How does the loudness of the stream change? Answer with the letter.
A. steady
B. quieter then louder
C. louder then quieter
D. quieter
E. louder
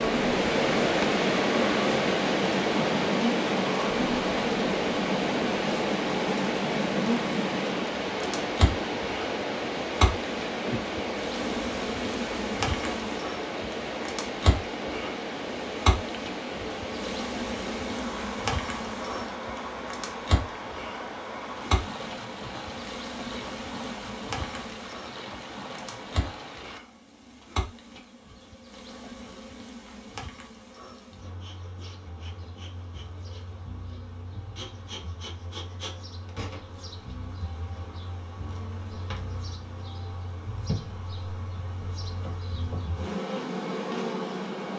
D.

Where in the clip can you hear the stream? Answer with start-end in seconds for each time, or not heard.
0.0-26.8.